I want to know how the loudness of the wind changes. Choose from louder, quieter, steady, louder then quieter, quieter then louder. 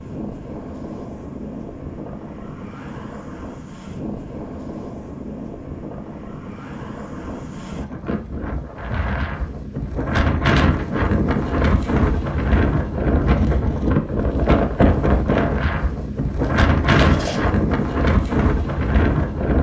louder.